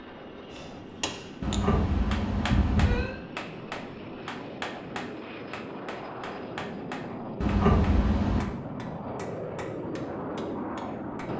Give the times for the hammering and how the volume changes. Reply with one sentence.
The hammering can be heard from 0.5 to 11.3 s, getting quieter.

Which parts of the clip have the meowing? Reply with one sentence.
The meowing can be heard from 1.4 to 3.1 s and from 7.4 to 8.5 s.